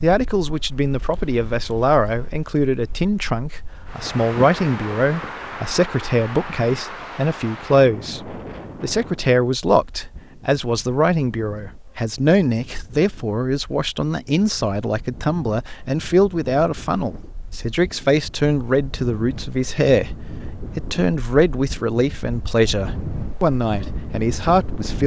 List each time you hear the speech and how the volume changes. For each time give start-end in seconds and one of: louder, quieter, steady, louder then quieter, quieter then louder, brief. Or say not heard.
0.0-25.0 steady.